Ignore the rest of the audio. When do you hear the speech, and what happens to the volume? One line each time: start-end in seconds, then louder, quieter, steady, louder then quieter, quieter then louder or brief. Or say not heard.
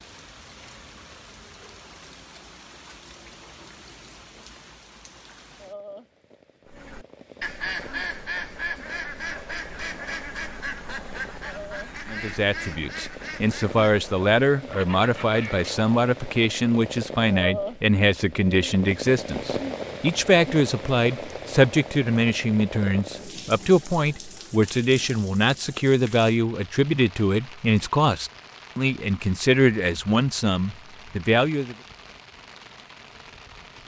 12.1-31.8 steady.